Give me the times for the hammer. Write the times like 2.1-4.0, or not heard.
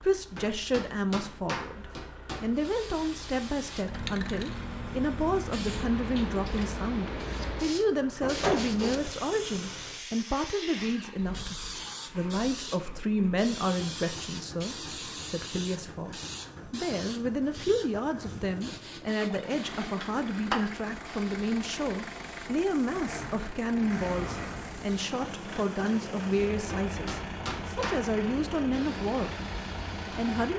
0.3-2.7, 26.6-28.1.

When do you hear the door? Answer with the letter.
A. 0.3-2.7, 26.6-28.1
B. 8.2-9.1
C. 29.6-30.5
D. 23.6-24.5
B.